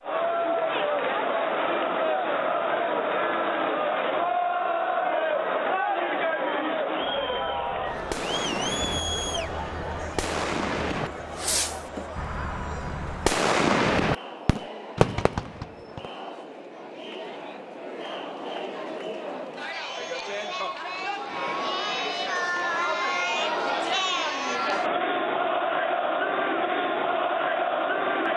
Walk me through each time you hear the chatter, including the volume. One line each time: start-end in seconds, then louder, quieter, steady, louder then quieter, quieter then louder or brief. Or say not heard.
0.0-28.3 quieter then louder.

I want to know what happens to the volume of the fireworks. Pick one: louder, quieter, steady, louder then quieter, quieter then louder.
louder.